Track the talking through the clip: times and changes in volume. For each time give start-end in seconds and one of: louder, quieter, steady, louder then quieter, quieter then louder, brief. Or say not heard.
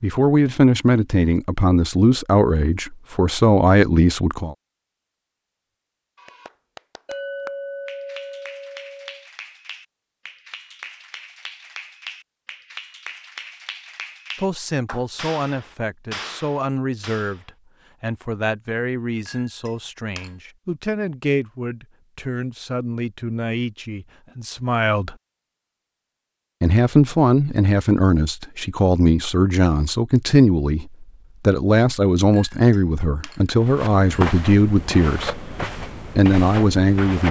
0.0-4.5 quieter then louder
14.3-25.1 steady
26.6-35.4 steady
36.1-37.2 brief.